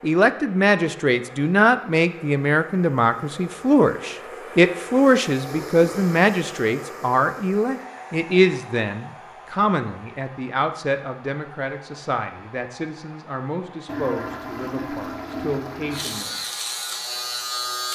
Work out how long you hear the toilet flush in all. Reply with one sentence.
You can hear the toilet flush for 3 seconds altogether.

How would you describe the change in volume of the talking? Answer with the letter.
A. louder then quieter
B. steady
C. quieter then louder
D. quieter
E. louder
D.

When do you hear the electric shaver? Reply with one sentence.
You can hear the electric shaver from 15.9 to 17.9 s.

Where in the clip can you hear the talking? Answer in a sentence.
You can hear the talking from 0.0 to 16.4 s.